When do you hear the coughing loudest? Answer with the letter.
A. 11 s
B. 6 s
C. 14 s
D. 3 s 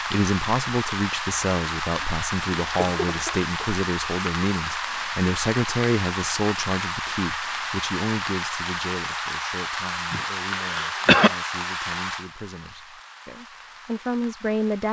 A.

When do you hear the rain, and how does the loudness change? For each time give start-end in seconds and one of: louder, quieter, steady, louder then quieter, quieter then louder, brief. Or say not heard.
0.0-14.8 quieter.